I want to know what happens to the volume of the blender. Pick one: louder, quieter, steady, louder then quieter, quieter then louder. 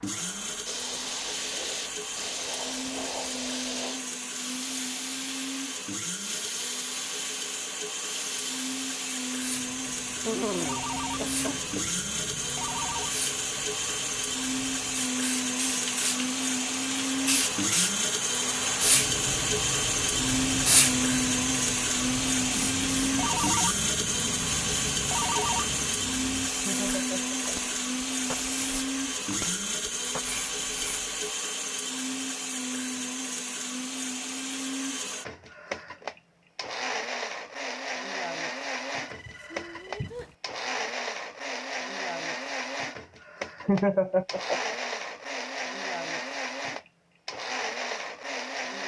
louder then quieter.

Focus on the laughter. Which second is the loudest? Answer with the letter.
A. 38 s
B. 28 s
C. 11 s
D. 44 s
D.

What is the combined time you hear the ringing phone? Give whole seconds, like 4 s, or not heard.
7 s.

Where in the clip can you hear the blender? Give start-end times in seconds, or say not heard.
0.0-48.8.